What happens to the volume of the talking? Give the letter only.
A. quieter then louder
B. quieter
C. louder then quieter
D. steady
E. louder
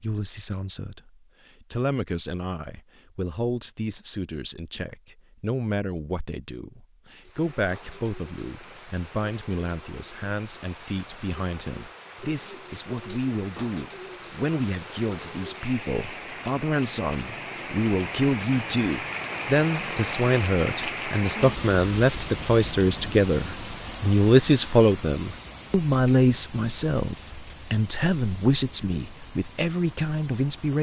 E.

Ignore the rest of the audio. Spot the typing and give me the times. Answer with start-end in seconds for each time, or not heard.
not heard.